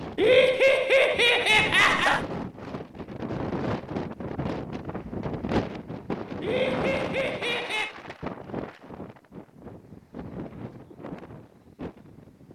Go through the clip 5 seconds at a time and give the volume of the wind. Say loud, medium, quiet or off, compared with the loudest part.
loud, loud, medium.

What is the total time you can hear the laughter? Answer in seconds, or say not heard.
4 s.